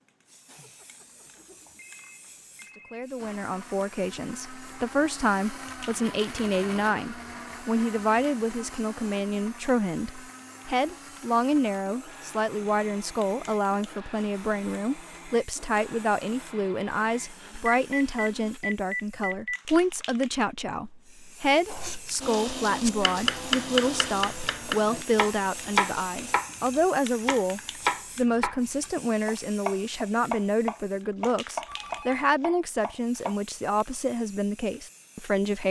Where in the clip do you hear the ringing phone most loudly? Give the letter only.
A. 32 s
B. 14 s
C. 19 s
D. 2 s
C.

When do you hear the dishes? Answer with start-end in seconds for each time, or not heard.
not heard.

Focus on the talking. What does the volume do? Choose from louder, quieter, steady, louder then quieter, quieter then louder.
steady.